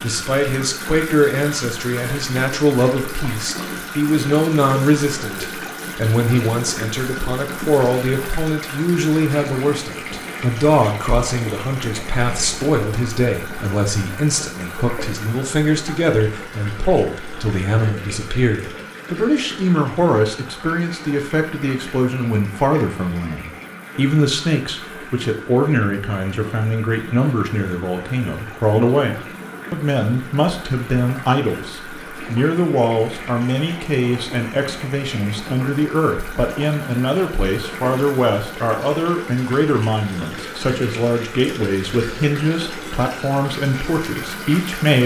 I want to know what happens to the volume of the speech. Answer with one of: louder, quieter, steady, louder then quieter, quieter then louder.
steady.